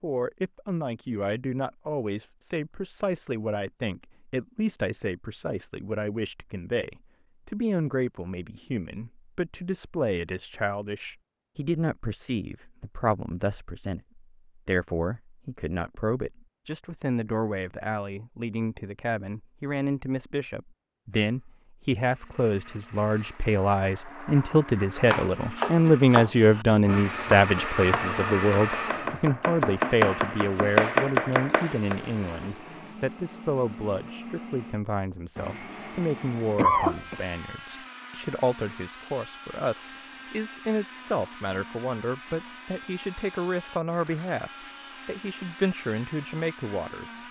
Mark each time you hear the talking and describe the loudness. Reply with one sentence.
You can hear the talking from 0.0 to 47.2 s, getting louder then quieter.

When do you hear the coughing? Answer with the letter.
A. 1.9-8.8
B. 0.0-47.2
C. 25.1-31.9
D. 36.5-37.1
D.